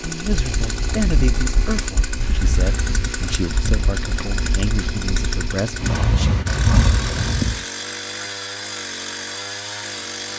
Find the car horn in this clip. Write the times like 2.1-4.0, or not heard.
not heard.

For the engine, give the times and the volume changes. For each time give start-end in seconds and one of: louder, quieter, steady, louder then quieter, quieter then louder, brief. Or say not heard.
0.0-10.3 steady.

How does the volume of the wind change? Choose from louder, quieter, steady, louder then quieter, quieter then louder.
louder.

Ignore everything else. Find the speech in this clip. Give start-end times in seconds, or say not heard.
0.0-6.3.